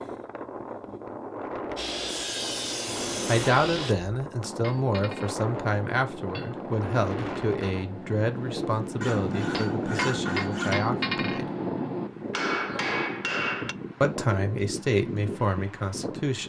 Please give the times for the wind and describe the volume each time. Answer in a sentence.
You can hear the wind from 0.0 to 16.4 s, at a steady volume.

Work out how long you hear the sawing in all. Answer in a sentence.
You can hear the sawing for 4 seconds altogether.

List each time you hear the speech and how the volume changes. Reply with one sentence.
The speech can be heard from 3.2 to 11.5 s, at a steady volume; and briefly from 14.0 to 16.4 s.